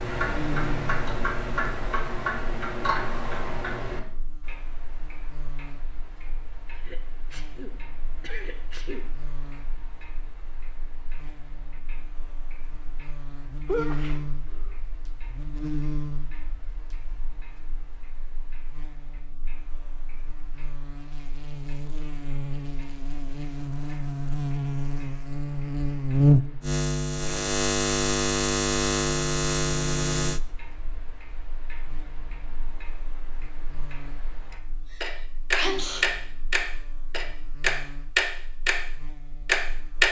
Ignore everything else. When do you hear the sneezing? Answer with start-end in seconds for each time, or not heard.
6.7-9.1, 13.7-14.7, 34.5-36.1.